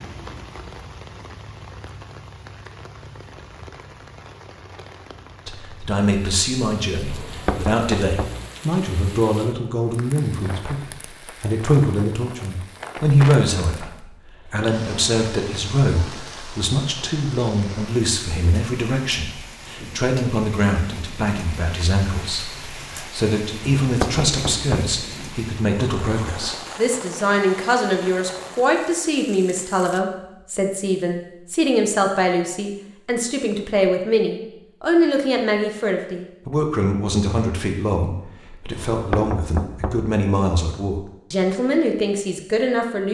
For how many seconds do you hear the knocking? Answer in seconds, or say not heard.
4 s.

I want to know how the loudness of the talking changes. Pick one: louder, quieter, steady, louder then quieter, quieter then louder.
steady.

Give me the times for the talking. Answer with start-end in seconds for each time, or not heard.
5.5-43.0.